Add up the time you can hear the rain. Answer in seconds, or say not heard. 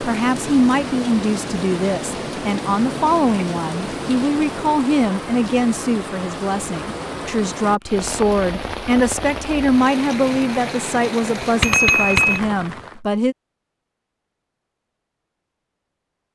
13 s.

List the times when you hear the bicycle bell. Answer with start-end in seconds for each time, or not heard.
11.6-12.4.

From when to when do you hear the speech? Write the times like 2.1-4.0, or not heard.
0.0-13.3.